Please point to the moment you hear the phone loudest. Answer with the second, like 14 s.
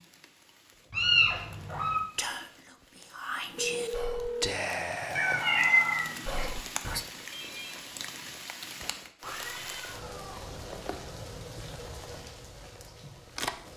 4 s.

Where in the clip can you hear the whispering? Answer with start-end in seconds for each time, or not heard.
2.1-7.0.